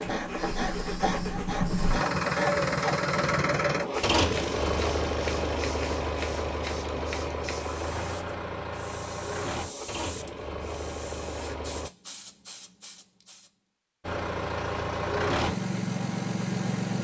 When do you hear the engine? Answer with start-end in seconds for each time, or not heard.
0.0-11.9, 14.0-16.9.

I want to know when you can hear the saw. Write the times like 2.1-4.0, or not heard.
0.0-3.1.